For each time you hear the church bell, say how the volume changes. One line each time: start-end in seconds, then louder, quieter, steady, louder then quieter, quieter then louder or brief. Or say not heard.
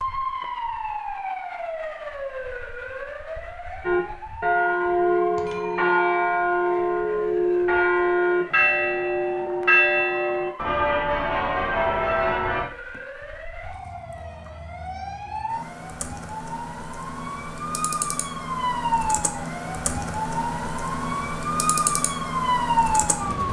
3.9-12.7 steady.